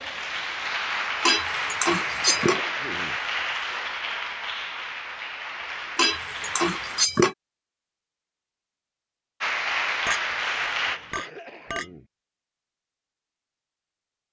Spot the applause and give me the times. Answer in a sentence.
The applause can be heard from 0.0 to 7.1 s and from 9.4 to 11.3 s.